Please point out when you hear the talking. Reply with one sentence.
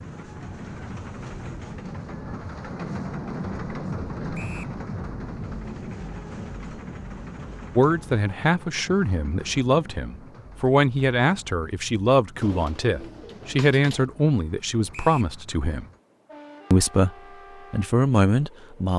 The talking can be heard from 7.8 to 15.8 s and from 16.7 to 18.9 s.